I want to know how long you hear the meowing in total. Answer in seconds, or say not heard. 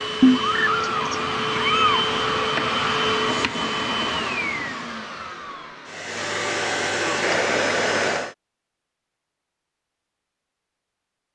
2 s.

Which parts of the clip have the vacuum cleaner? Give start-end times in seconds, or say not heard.
0.0-8.3.